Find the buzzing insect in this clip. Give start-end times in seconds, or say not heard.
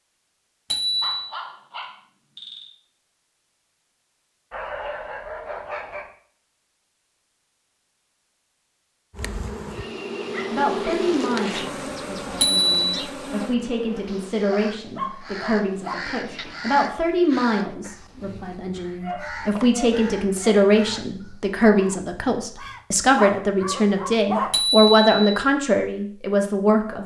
9.1-14.3.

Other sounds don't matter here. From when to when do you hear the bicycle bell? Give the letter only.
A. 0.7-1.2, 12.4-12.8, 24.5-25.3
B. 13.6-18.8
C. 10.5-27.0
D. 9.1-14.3
A.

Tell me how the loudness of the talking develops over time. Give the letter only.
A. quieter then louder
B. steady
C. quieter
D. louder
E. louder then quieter
D.